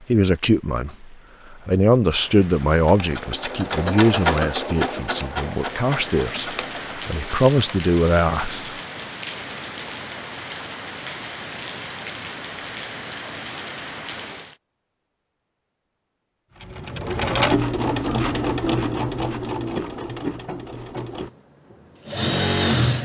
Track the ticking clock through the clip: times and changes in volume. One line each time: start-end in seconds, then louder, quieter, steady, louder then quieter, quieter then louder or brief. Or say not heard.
not heard.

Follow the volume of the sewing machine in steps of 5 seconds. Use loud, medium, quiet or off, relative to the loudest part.
loud, medium, off, loud, loud.